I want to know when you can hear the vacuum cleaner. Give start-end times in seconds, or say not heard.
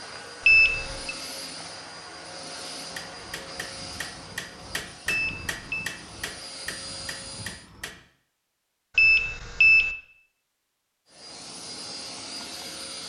0.0-7.7, 11.1-13.0.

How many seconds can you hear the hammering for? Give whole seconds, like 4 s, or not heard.
5 s.